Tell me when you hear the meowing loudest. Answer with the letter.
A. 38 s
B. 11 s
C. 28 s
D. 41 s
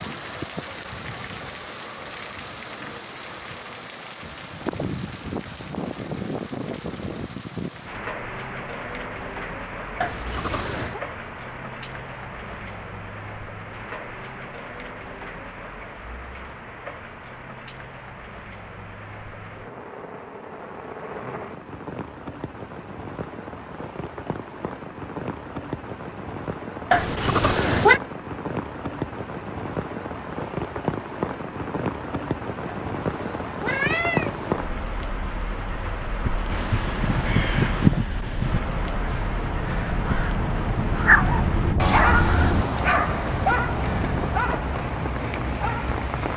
C.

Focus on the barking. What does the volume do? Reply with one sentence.
The volume of the barking goes down.